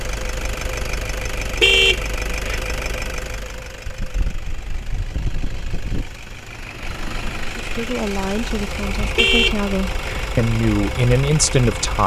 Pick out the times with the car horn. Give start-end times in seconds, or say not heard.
1.6-2.6, 9.2-10.3.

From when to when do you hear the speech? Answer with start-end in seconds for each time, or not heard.
7.5-12.0.